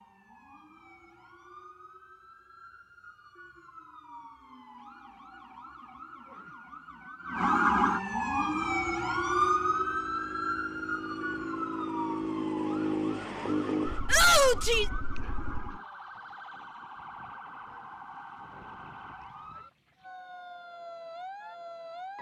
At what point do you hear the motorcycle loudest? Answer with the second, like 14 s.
13 s.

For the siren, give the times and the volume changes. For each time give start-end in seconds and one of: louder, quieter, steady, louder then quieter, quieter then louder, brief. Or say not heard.
0.0-22.1 louder then quieter.